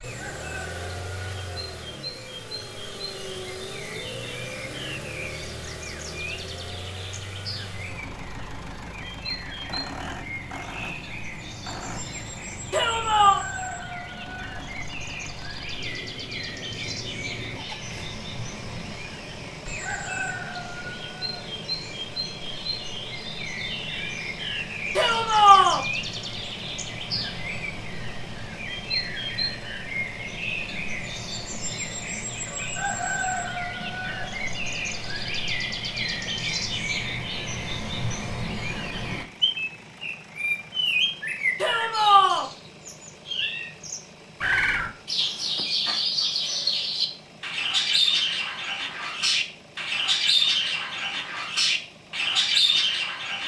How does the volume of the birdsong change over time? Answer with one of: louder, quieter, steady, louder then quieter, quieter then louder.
louder.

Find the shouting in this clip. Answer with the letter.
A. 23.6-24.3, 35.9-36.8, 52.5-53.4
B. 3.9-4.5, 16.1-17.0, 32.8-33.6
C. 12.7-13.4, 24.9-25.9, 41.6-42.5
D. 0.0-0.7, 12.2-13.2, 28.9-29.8
C.